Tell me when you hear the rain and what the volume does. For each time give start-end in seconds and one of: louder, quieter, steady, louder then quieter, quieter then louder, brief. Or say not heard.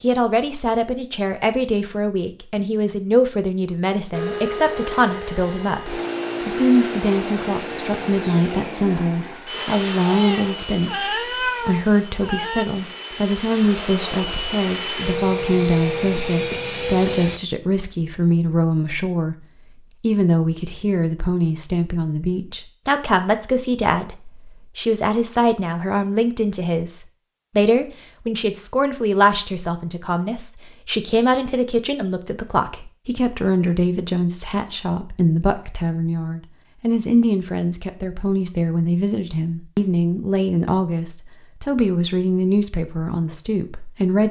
not heard.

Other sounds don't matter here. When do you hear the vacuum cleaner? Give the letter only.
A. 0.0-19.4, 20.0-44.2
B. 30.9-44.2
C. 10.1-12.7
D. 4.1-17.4
D.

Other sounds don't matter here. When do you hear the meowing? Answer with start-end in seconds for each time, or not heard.
10.1-12.7.